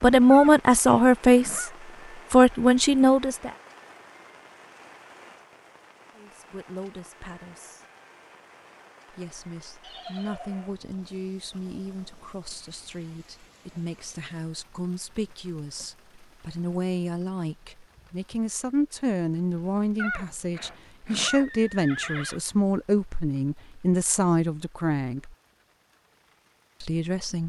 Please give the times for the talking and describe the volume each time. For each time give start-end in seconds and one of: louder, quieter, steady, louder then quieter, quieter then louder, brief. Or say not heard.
0.0-1.7 brief
2.3-3.5 brief
6.2-7.8 brief
9.1-25.3 louder
26.8-27.4 brief.